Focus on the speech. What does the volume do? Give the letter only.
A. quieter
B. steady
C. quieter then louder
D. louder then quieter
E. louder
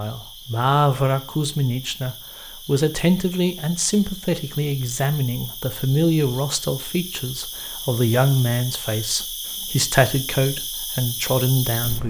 B.